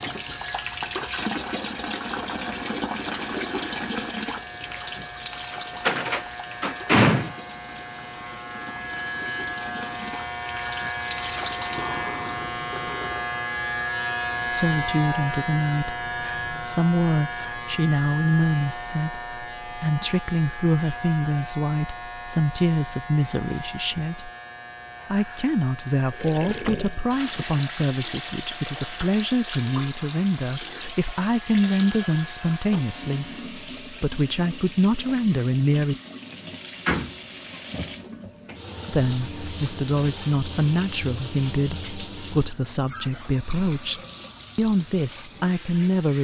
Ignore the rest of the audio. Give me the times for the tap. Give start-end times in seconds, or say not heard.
0.0-13.2, 26.1-46.1.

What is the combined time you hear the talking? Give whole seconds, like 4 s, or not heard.
28 s.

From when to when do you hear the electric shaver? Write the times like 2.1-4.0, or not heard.
0.0-33.5.